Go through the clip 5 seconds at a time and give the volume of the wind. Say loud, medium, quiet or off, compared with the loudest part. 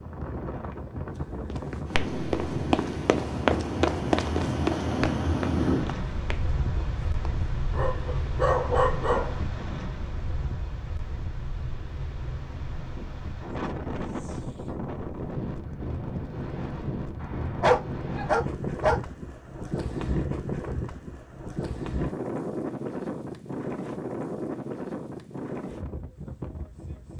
loud, loud, medium, loud, loud, medium.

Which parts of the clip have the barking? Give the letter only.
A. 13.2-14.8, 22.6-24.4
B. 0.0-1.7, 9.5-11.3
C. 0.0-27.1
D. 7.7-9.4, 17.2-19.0
D.